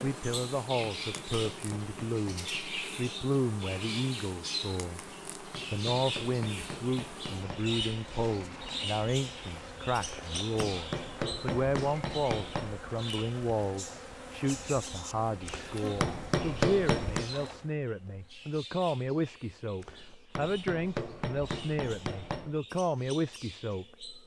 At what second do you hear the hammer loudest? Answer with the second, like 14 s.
17 s.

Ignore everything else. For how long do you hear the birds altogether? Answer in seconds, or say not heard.
24 s.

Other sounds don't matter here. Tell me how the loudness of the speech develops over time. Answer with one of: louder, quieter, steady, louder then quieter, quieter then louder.
steady.